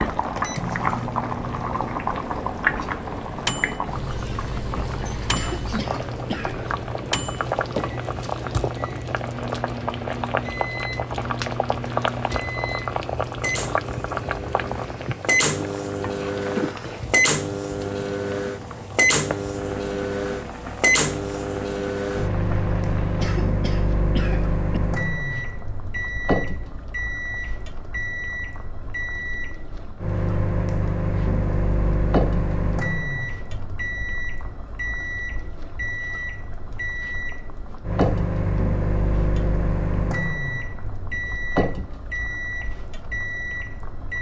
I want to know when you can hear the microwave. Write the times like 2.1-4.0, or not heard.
0.1-44.1.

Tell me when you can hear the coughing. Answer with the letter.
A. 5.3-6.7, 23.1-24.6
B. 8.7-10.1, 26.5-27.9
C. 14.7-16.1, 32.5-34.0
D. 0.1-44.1
A.